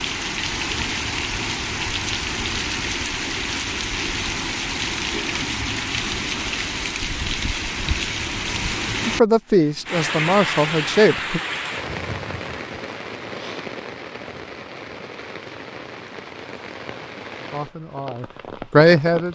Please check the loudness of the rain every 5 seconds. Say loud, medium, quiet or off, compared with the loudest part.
loud, loud, loud, medium.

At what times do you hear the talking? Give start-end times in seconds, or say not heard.
9.1-11.4, 17.5-19.3.